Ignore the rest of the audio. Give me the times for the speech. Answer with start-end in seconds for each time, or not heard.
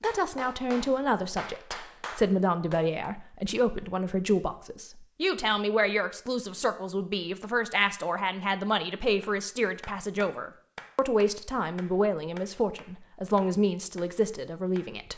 0.0-15.1.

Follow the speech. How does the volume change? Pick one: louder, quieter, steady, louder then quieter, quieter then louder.
steady.